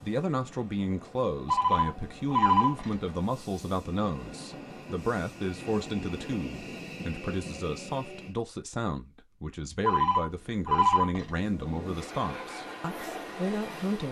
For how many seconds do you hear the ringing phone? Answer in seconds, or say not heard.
3 s.